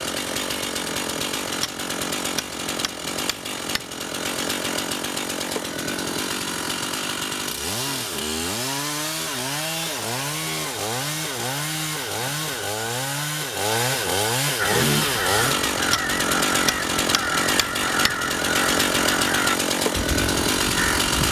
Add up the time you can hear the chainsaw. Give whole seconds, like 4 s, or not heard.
21 s.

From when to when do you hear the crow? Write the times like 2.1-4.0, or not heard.
14.6-21.2.